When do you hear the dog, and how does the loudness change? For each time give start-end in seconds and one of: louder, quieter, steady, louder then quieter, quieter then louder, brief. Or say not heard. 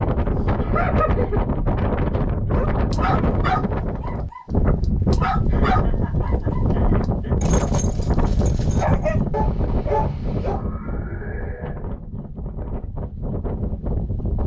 2.5-10.6 quieter then louder.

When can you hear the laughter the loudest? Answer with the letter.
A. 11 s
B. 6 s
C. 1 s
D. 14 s
C.